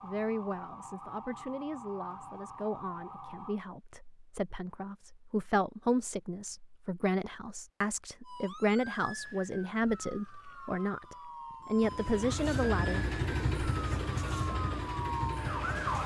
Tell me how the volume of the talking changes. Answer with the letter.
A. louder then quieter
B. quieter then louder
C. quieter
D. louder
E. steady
D.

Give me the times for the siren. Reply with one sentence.
You can hear the siren from 0.0 to 3.6 s and from 8.2 to 16.0 s.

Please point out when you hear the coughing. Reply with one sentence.
You can't hear the coughing here.